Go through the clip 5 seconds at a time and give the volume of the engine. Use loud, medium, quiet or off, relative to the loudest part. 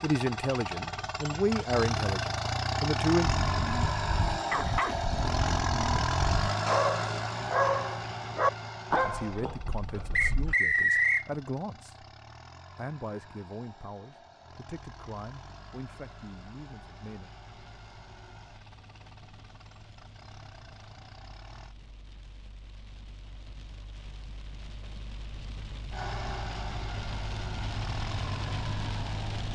loud, loud, quiet, quiet, quiet, medium.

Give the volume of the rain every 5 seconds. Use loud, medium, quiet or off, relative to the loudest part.
off, off, off, quiet, quiet, loud.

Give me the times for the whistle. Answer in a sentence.
You can hear the whistle from 10.2 to 11.2 s.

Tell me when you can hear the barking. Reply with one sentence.
You can hear the barking from 3.2 to 10.6 s.